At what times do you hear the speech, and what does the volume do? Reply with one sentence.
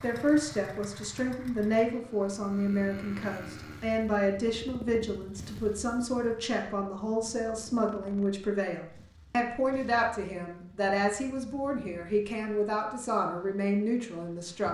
You can hear the speech from 0.0 to 14.6 s, at a steady volume.